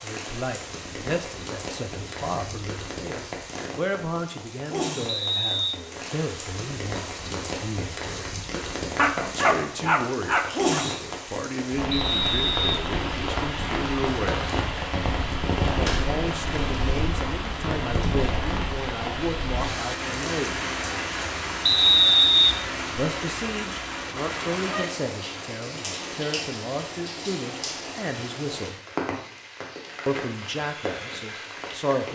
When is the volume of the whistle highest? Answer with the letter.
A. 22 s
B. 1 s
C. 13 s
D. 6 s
A.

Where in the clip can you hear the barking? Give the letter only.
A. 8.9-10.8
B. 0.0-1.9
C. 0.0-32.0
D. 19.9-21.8
A.